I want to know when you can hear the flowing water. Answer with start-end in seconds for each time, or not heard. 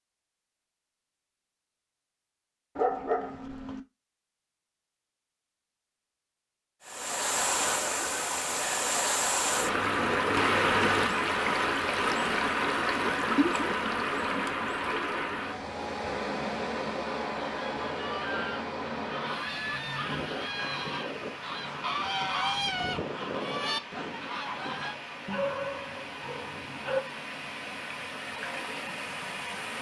6.8-29.7.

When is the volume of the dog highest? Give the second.
3 s.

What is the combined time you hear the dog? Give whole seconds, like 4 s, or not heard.
3 s.